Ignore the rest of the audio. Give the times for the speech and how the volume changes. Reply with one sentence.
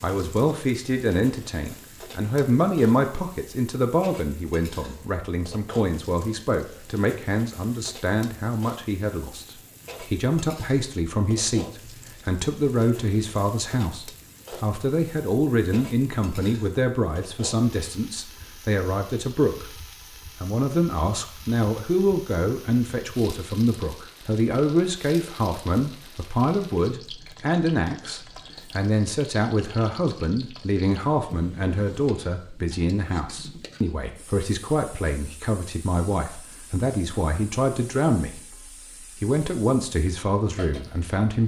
You can hear the speech from 0.0 to 41.4 s, at a steady volume.